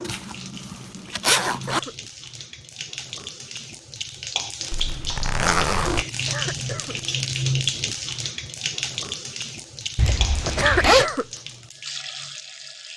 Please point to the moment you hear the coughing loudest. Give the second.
11 s.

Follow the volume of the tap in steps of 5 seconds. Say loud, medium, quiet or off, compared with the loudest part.
medium, loud, medium.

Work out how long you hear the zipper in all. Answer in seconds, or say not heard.
4 s.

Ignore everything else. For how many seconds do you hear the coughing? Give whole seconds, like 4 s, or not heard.
2 s.